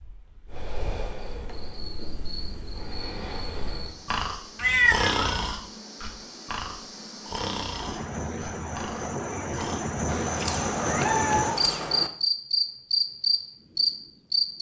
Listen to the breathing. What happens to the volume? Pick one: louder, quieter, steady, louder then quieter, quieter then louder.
louder then quieter.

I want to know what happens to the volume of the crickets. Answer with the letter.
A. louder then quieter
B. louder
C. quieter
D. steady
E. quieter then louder
B.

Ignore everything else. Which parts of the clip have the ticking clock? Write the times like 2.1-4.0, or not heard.
not heard.